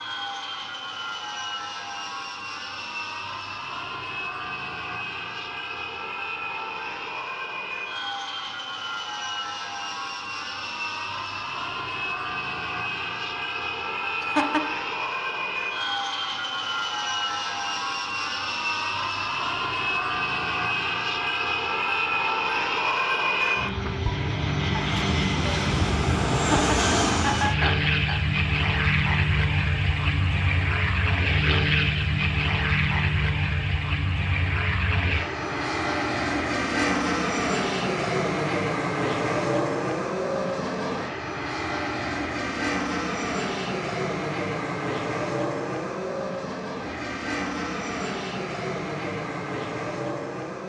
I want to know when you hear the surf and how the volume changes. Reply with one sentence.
The surf can't be heard in this clip.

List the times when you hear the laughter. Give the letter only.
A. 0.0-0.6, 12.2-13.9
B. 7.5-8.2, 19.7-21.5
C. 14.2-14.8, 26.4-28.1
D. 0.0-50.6
C.